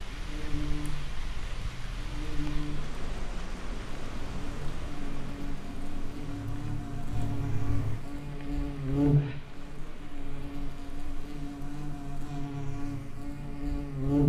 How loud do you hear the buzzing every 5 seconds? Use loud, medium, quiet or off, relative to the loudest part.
medium, loud, loud.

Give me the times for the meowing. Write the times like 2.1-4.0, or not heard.
7.1-8.1.